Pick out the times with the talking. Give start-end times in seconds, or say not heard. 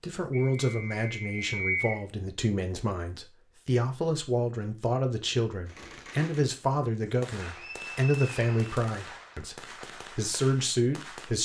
0.0-11.4.